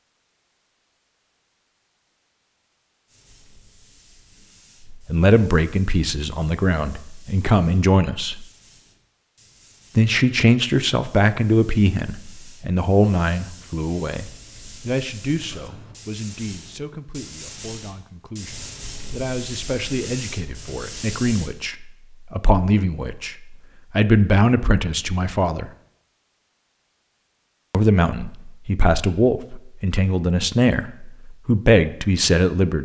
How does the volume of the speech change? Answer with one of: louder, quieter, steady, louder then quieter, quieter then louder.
quieter then louder.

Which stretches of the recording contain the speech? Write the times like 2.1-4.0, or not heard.
4.9-8.4, 9.9-25.7, 27.7-32.8.